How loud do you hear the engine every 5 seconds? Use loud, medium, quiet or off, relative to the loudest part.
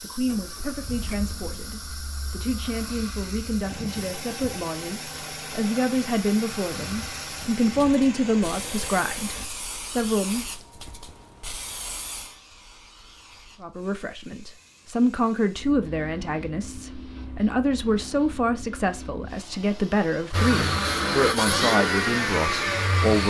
quiet, quiet, off, off, loud.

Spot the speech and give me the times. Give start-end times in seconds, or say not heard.
0.0-10.4, 13.6-23.2.